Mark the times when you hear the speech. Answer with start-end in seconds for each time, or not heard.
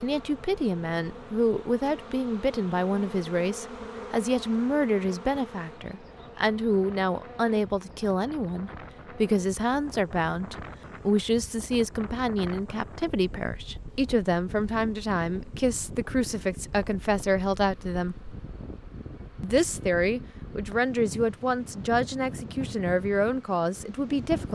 0.0-18.4, 19.4-24.4.